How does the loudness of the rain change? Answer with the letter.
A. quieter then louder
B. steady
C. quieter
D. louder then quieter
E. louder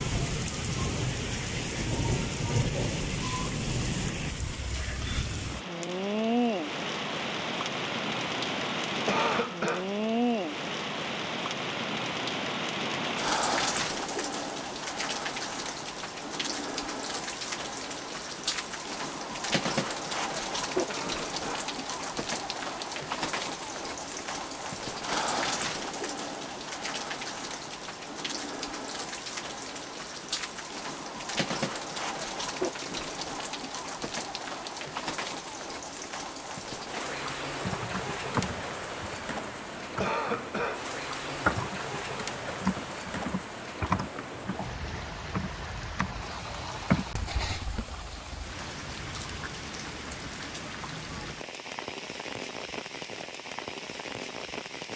C.